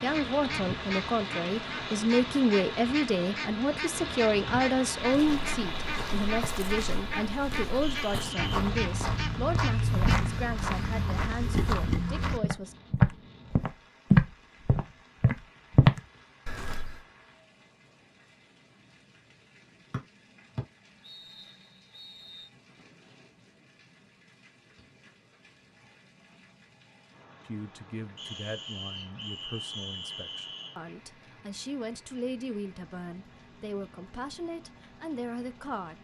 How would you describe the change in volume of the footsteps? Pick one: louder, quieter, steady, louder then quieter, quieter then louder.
louder.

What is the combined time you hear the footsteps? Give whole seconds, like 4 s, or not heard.
12 s.